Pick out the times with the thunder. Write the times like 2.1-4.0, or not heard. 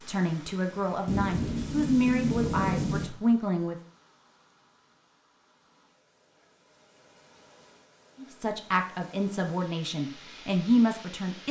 1.1-3.1.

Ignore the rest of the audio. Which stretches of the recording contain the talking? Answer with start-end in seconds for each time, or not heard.
0.1-3.8, 8.2-11.4.